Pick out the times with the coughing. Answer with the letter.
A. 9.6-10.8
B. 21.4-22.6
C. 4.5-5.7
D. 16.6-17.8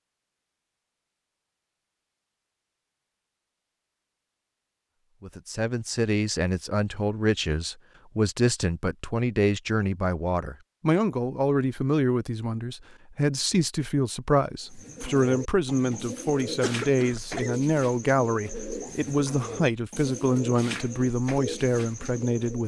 D.